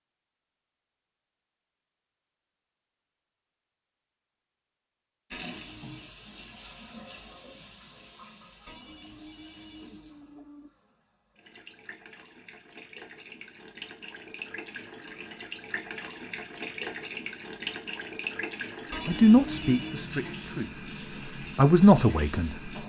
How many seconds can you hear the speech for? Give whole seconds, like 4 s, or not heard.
4 s.